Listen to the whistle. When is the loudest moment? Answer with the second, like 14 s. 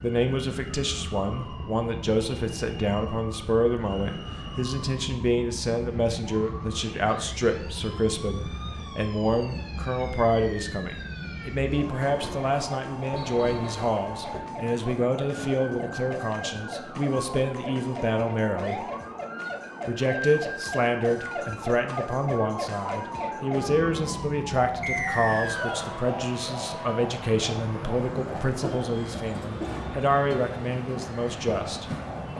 25 s.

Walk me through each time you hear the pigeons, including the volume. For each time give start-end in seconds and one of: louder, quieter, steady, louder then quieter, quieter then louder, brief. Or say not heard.
not heard.